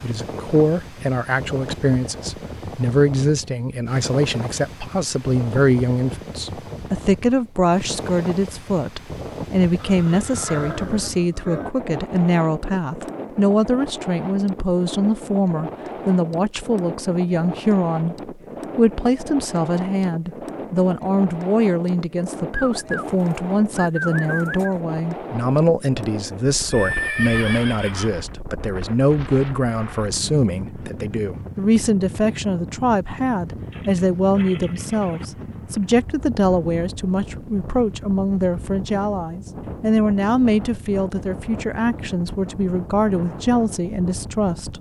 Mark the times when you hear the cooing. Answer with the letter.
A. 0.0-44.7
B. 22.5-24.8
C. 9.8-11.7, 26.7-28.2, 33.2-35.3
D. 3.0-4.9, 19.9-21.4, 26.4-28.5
B.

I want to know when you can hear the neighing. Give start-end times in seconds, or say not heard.
9.8-11.7, 26.7-28.2, 33.2-35.3.